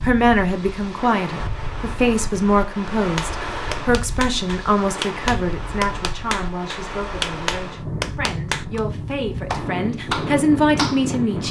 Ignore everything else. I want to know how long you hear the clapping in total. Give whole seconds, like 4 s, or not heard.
8 s.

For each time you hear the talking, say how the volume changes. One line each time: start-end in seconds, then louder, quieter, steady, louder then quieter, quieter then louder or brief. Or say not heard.
0.0-11.4 quieter then louder.